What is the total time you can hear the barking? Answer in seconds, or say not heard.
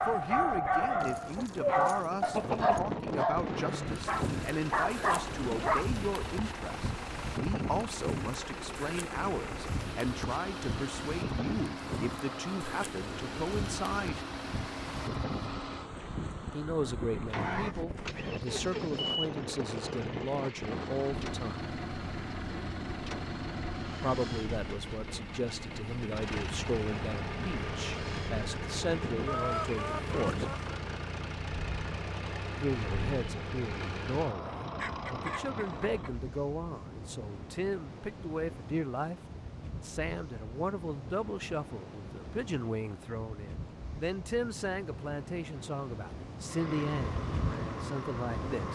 6 s.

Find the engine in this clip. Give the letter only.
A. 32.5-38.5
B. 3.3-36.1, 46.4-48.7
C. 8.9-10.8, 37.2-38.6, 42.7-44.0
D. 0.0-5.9
B.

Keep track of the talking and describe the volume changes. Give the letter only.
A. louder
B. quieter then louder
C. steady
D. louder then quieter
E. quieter
C.